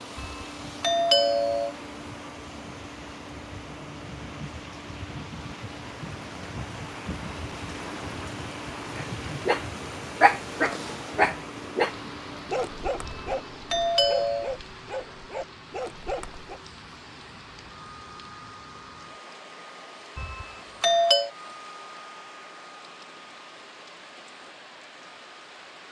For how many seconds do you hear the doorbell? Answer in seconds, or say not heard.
4 s.